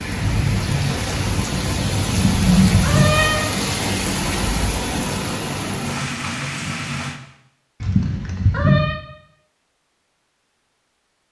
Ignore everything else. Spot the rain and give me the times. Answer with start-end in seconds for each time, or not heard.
0.0-7.2.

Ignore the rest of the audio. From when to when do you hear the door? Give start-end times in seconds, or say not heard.
not heard.